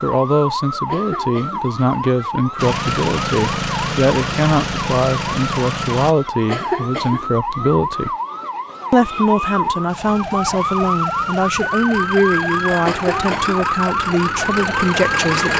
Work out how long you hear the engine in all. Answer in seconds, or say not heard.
9 s.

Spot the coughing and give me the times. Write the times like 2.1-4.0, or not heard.
0.8-1.7, 6.5-7.3, 12.8-13.7.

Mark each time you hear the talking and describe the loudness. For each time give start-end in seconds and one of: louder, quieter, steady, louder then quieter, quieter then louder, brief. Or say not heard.
0.0-8.1 steady
8.9-15.5 steady.